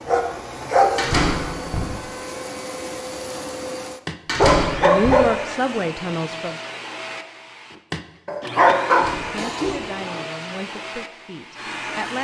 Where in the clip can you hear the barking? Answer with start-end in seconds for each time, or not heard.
0.1-1.0, 4.4-5.3, 8.2-10.2.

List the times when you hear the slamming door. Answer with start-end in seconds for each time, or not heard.
0.9-1.9, 4.2-5.2, 8.9-9.8.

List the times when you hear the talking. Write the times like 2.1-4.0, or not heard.
4.8-6.5, 9.2-12.1.